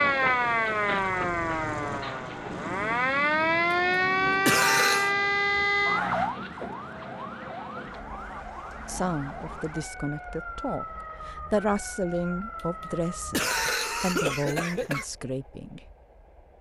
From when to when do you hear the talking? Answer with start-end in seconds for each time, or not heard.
8.8-15.8.